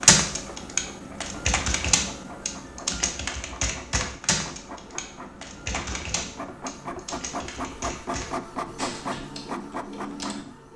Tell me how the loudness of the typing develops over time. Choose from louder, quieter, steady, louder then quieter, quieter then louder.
quieter.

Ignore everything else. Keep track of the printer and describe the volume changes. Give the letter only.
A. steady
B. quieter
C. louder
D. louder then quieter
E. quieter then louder
C.